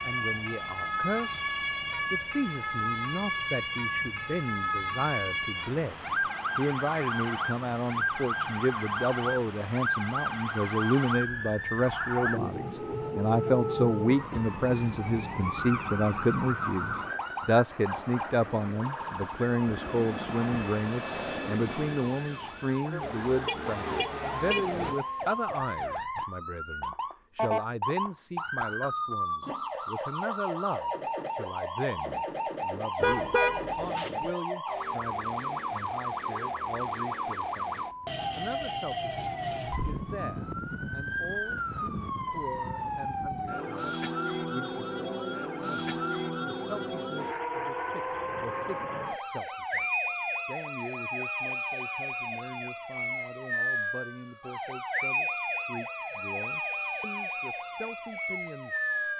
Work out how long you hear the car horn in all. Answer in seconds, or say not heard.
3 s.